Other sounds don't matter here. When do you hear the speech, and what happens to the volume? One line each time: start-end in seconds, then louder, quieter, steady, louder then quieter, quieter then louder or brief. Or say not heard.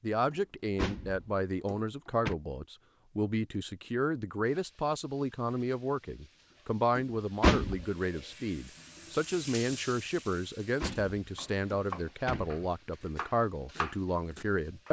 0.0-14.8 steady.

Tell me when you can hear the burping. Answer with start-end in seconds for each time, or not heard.
not heard.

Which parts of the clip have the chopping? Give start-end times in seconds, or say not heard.
11.3-14.8.